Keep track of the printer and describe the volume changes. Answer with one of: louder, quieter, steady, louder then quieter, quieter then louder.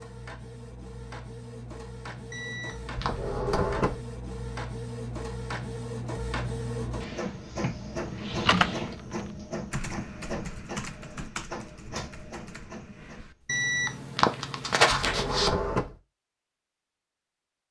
louder then quieter.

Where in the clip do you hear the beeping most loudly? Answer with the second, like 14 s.
15 s.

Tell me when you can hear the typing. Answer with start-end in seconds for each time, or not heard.
8.4-9.0, 9.7-13.6.